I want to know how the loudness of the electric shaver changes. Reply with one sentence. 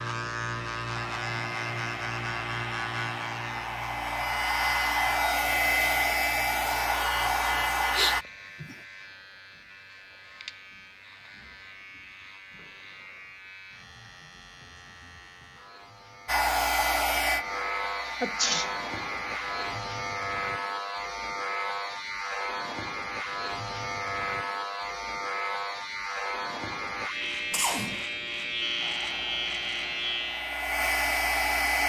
The volume of the electric shaver goes down, then up.